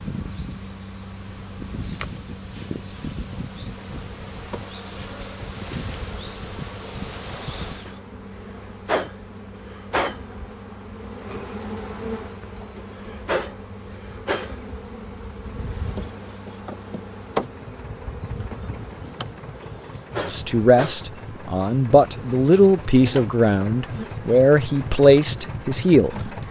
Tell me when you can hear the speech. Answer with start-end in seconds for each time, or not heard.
20.2-26.4.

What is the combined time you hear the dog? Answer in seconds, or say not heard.
not heard.